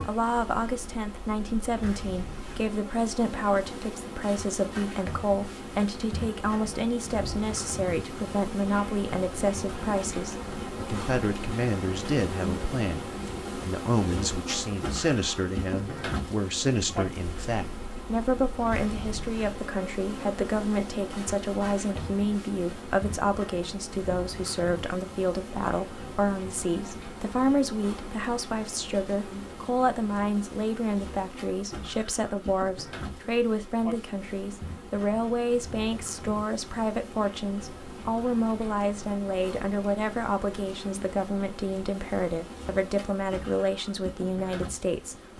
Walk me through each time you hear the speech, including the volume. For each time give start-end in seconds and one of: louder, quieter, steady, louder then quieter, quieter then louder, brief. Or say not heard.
0.1-45.2 steady.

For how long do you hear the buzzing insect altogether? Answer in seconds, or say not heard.
45 s.